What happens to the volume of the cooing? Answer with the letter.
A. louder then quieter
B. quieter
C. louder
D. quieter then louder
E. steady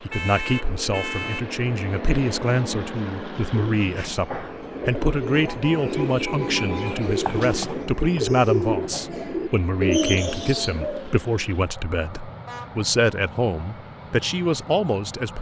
C.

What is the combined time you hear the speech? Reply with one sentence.
The speech can be heard for 15 seconds in total.